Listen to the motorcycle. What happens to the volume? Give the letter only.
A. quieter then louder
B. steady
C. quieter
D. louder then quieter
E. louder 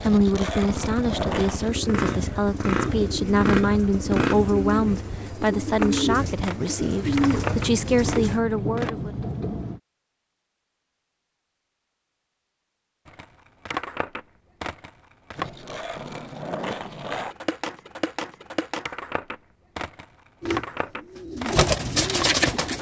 E.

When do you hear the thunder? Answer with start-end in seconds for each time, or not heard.
7.0-9.8.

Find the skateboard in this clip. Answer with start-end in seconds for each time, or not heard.
0.0-1.7, 5.8-8.9, 13.1-22.7.